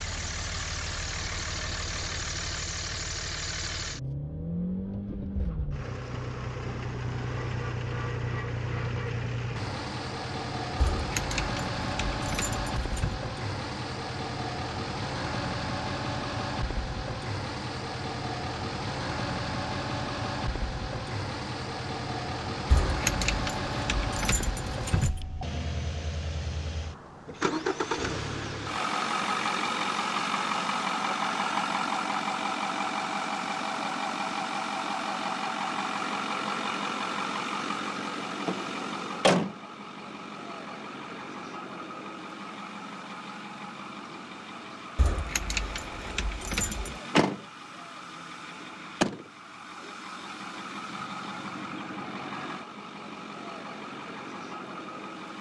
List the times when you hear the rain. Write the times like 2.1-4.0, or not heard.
not heard.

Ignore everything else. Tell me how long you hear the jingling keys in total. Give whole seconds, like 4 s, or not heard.
7 s.